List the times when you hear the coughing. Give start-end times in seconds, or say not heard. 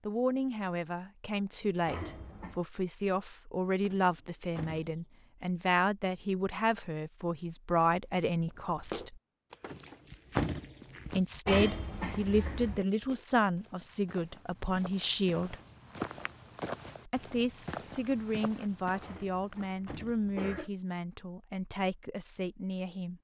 1.9-2.6, 11.4-12.8, 19.0-20.7.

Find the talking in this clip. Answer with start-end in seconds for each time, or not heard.
0.1-9.2, 11.2-15.6, 17.1-23.1.